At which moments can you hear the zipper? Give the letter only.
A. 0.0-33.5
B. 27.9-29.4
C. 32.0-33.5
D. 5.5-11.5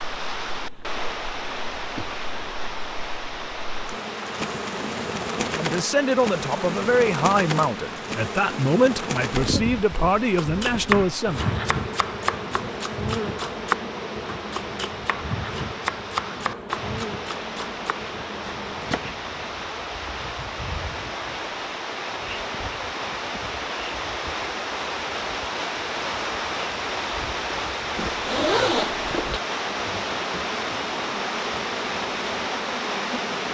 B.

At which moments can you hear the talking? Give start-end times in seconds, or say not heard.
5.5-11.5.